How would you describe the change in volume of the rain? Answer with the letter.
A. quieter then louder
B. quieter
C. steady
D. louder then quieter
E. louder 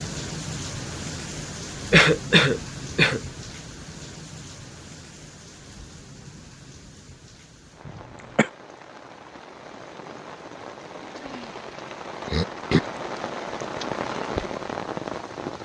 A.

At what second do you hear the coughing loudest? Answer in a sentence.
The volume of the coughing peaks at 2 seconds.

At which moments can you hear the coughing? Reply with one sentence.
The coughing can be heard from 1.9 to 3.2 s, from 7.8 to 8.5 s and from 12.2 to 12.8 s.